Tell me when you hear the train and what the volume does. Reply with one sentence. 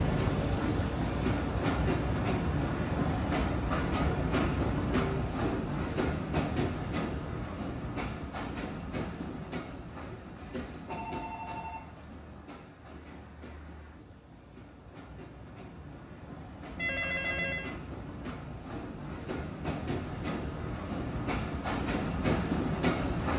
You can hear the train from 0.0 to 23.3 s, getting quieter then louder.